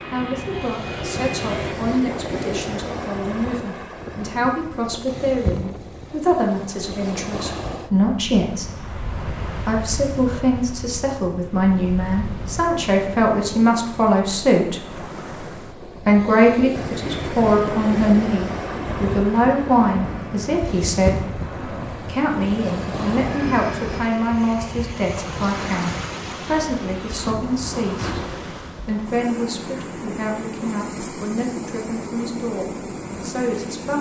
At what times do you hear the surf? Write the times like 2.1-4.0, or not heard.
0.0-33.9.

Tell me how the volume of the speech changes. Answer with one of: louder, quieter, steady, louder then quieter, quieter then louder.
louder then quieter.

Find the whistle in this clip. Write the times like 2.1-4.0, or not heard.
not heard.